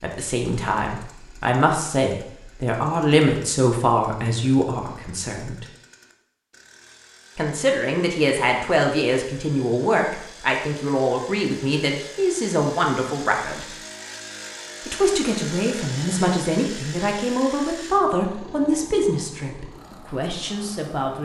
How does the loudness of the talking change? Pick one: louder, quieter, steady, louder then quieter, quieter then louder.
steady.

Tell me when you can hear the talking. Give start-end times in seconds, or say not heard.
0.0-5.7, 7.3-13.7, 14.8-21.2.